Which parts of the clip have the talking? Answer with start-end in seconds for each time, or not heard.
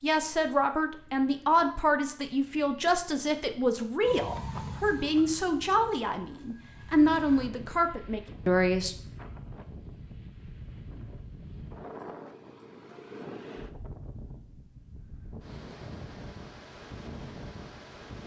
0.0-8.9.